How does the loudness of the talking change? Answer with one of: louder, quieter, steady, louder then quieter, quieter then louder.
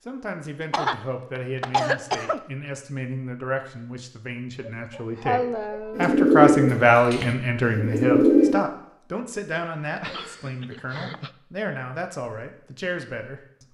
louder then quieter.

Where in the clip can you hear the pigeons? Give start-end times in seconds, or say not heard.
6.0-8.6.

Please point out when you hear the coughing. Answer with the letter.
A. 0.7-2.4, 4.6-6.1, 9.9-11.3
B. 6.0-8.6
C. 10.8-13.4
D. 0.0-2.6
A.